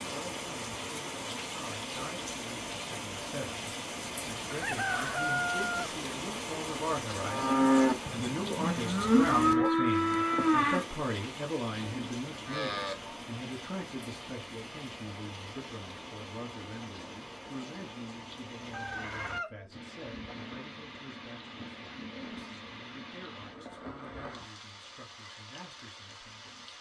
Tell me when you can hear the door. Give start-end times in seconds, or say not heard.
not heard.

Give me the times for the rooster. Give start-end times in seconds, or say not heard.
4.5-5.9, 18.7-20.4.